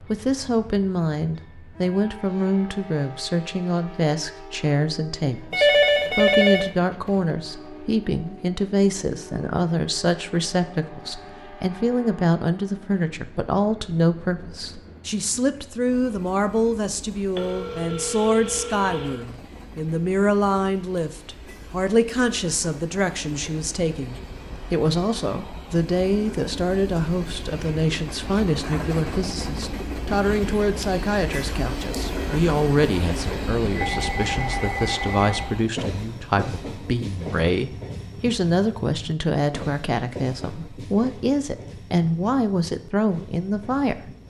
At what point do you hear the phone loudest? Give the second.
6 s.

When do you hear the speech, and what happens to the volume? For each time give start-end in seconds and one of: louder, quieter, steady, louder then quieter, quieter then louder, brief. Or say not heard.
0.0-44.1 steady.